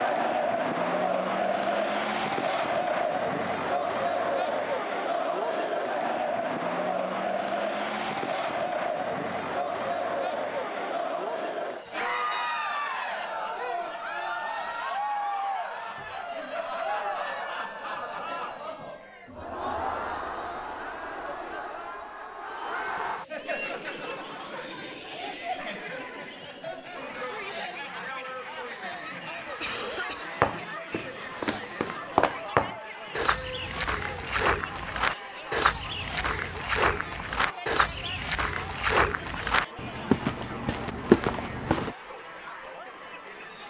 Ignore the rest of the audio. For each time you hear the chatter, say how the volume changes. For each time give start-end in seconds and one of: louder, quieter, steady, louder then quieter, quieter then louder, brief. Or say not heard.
0.0-43.6 quieter.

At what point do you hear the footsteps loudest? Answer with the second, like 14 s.
41 s.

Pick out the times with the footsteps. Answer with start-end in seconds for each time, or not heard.
30.4-42.0.